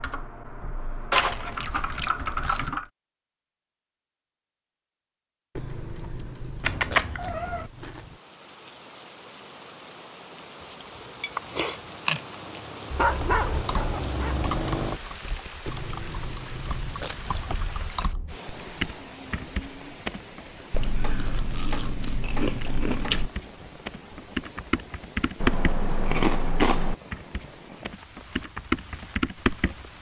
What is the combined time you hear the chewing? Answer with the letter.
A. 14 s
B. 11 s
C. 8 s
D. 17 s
B.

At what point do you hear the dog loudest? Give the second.
13 s.